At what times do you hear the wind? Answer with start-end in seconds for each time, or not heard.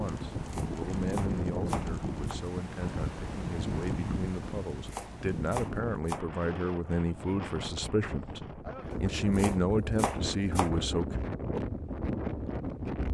0.0-13.0.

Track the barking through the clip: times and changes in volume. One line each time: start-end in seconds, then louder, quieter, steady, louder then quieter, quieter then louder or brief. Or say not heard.
not heard.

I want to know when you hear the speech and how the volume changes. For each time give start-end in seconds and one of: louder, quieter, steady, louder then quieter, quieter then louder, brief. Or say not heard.
0.0-11.2 louder.